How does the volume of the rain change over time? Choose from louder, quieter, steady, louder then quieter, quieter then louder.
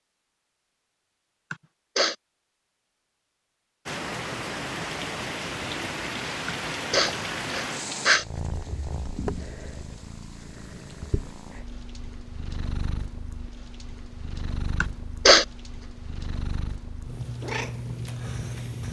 quieter.